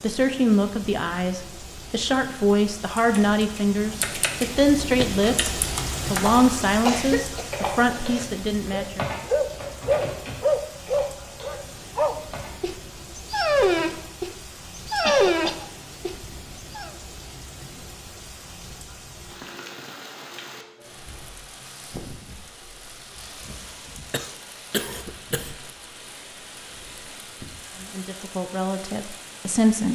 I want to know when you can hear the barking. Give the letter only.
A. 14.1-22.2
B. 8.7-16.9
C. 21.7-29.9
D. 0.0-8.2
B.